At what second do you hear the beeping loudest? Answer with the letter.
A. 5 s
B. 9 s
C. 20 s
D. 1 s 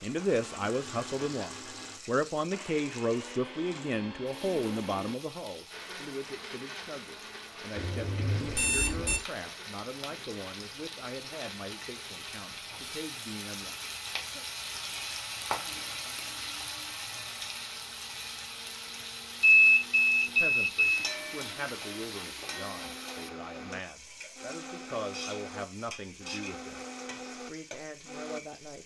C.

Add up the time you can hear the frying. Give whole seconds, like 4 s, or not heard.
29 s.